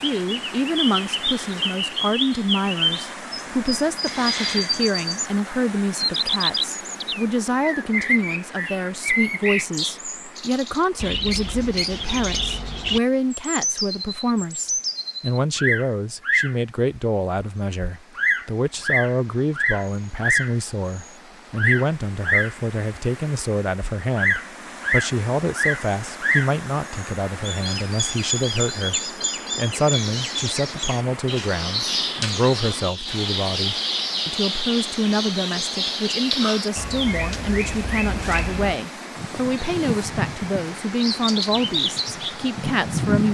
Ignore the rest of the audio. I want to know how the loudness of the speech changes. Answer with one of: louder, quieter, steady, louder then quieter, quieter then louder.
steady.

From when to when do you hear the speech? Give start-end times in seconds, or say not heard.
0.0-43.2.